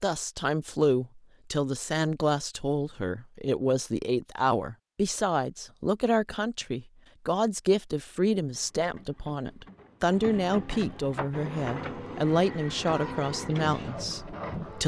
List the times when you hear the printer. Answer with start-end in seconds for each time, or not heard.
8.5-14.8.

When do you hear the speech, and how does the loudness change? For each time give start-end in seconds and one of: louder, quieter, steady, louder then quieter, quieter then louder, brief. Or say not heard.
0.0-14.8 steady.